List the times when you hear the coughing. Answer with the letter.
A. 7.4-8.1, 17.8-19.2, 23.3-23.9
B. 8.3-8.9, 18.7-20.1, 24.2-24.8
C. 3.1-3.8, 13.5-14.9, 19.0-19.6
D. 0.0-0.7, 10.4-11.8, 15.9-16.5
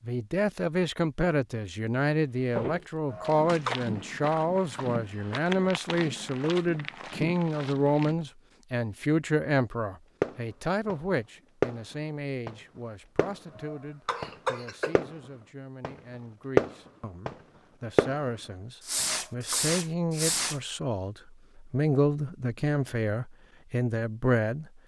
C.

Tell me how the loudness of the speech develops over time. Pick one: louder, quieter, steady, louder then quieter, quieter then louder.
quieter then louder.